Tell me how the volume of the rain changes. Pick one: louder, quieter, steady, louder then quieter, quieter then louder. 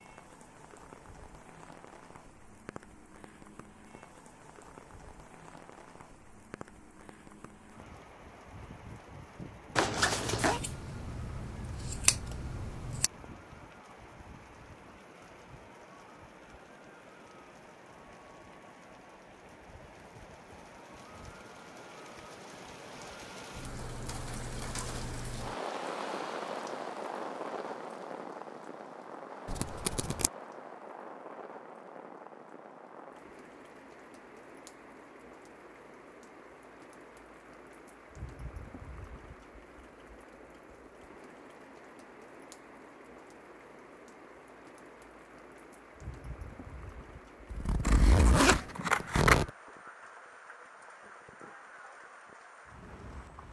louder then quieter.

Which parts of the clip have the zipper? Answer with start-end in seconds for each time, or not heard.
9.8-10.6, 47.5-49.5.